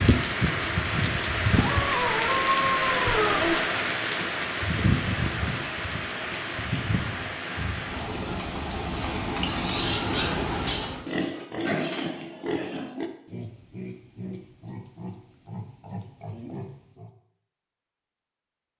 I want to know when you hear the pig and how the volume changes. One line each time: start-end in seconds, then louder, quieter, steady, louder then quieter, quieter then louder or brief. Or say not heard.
8.9-17.1 quieter.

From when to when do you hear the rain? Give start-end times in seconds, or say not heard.
0.0-11.1.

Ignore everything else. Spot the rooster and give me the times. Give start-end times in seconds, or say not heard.
1.6-3.6.